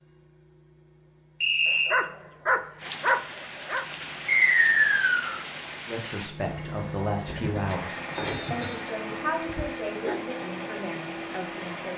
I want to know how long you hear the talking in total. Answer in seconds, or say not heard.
6 s.